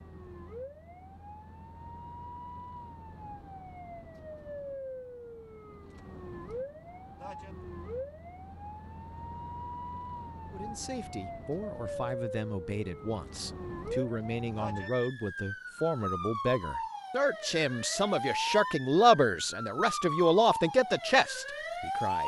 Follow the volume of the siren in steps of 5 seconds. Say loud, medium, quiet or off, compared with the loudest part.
medium, medium, medium, loud, loud.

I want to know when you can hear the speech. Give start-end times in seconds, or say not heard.
10.5-22.2.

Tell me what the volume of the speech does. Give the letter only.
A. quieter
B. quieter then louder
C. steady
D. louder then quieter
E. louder
E.